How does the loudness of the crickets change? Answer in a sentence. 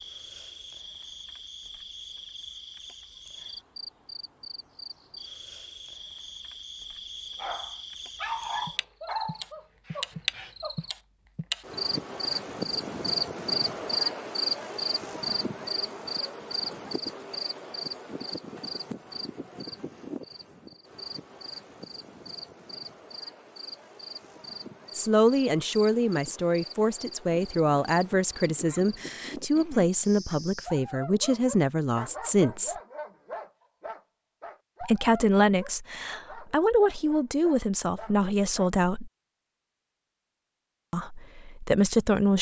The loudness of the crickets goes up, then down.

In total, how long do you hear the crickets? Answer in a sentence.
The crickets can be heard for 31 seconds in total.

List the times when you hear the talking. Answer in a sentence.
The talking can be heard from 24.9 to 32.8 s, from 34.8 to 39.1 s and from 40.9 to 42.3 s.